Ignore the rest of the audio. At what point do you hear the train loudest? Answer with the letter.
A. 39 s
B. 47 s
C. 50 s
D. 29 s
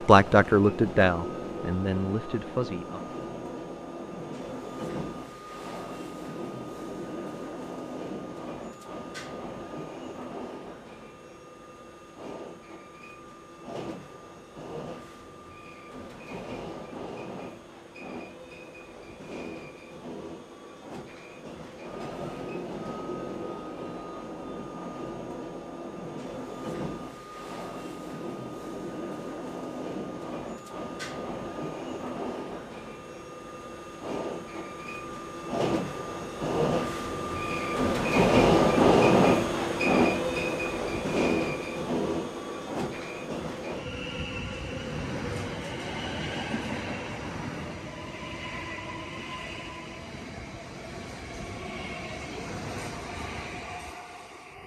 A.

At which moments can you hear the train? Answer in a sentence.
You can hear the train from 0.0 to 54.6 s.